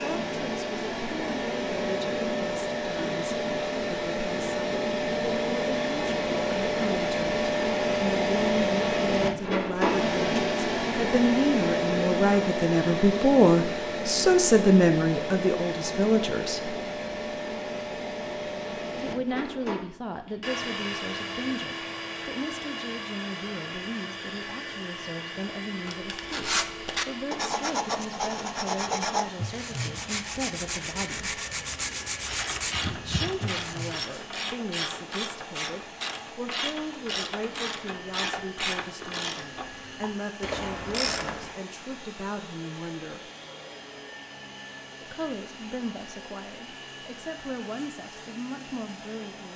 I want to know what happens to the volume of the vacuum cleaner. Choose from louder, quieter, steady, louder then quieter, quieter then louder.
quieter.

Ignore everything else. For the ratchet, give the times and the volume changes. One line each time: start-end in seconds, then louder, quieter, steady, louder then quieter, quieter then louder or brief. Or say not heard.
32.2-41.5 steady.